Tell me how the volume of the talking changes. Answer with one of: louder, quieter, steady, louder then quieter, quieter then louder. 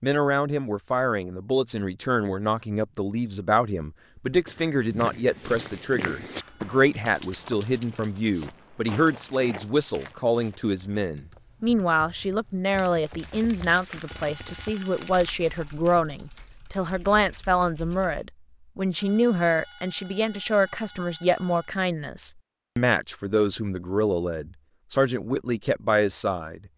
steady.